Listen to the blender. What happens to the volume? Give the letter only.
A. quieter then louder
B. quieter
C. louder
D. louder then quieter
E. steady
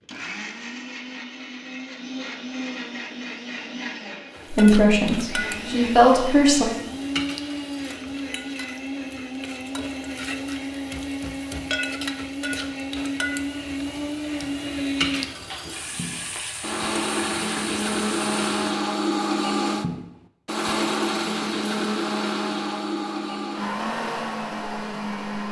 C.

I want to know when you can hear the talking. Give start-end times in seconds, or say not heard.
4.5-6.7.